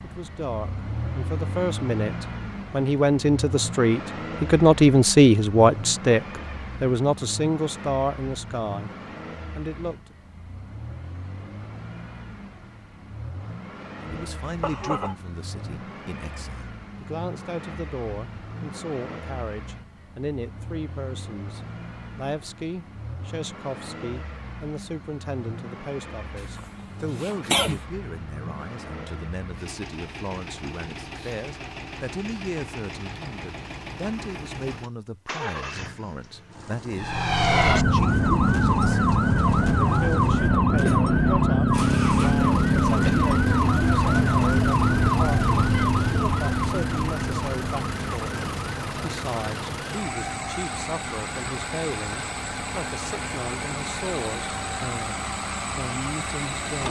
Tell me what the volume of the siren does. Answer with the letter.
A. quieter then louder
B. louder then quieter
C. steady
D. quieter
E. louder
D.